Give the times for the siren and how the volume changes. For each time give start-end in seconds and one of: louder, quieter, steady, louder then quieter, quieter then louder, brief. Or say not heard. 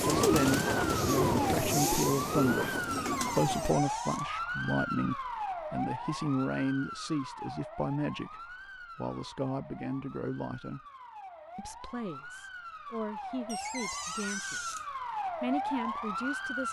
0.2-16.6 quieter then louder.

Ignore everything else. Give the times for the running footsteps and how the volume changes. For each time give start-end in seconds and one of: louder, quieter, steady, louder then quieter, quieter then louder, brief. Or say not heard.
not heard.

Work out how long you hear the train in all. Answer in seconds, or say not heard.
4 s.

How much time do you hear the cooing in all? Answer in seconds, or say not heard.
4 s.